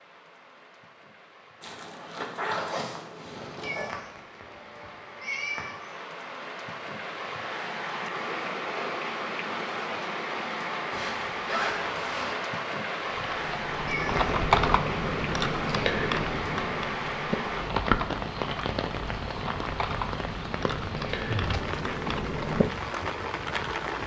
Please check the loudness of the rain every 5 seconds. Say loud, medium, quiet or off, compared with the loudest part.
quiet, loud, loud, loud, loud.